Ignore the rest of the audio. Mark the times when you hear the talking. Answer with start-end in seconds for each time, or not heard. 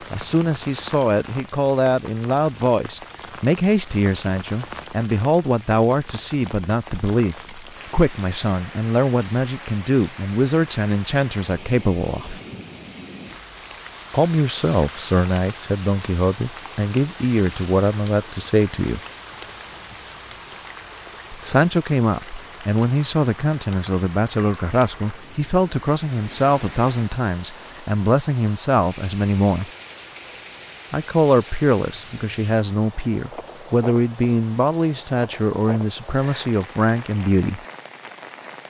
0.1-12.4, 14.1-19.0, 21.3-29.7, 30.9-37.6.